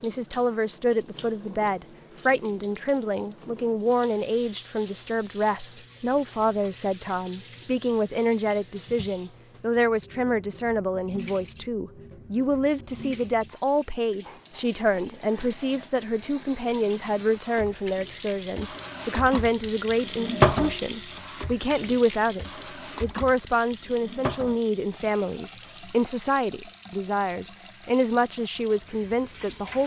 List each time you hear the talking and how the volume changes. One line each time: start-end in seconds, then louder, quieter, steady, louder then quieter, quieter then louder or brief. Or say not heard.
0.0-29.8 steady.